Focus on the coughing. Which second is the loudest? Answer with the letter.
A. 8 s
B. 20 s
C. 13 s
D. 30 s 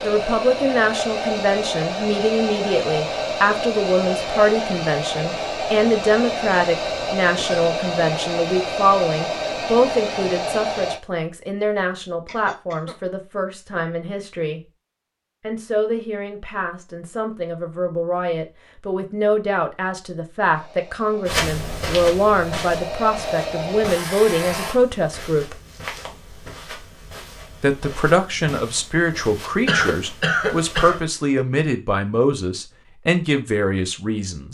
D.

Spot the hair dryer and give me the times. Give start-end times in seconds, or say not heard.
0.0-11.0, 20.5-24.8.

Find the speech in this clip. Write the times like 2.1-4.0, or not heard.
0.0-14.6, 15.4-25.6, 27.6-34.5.